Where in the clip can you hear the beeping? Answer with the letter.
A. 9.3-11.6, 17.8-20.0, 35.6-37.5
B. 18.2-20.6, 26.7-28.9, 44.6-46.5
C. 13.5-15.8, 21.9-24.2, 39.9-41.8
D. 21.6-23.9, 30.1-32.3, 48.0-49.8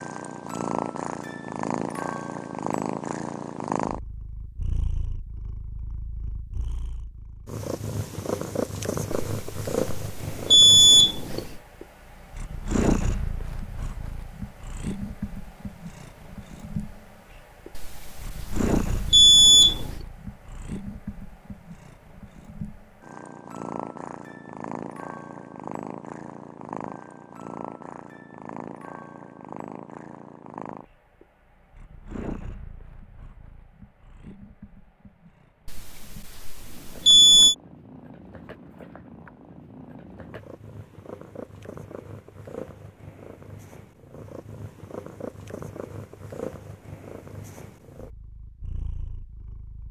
A.